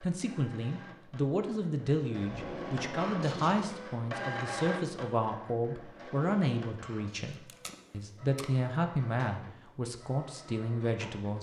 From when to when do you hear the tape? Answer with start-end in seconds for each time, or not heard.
2.2-3.8, 7.5-8.4.